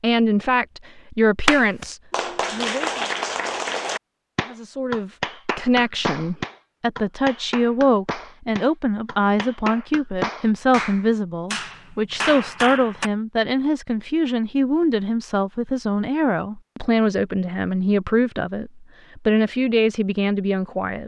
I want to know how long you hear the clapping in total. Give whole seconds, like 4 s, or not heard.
12 s.